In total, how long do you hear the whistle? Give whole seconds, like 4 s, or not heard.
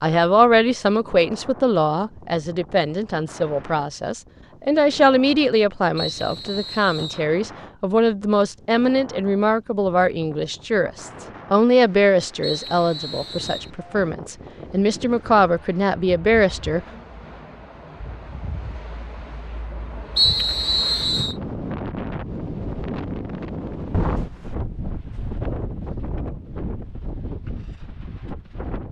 4 s.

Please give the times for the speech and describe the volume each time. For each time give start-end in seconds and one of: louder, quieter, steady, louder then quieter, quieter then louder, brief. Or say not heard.
0.0-16.8 steady.